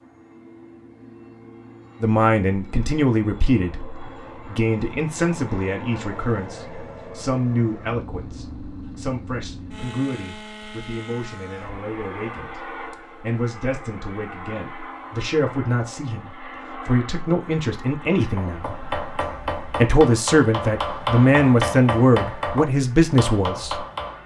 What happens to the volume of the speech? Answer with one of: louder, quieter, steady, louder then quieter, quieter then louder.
quieter then louder.